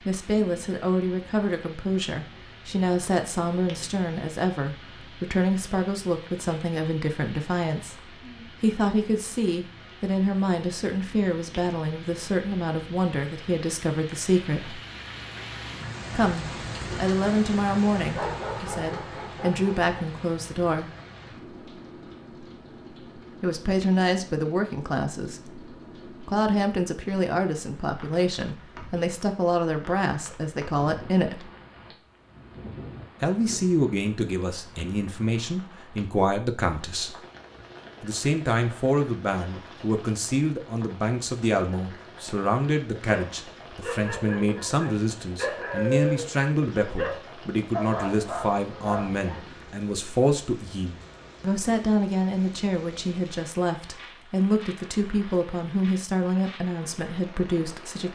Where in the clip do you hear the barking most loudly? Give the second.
46 s.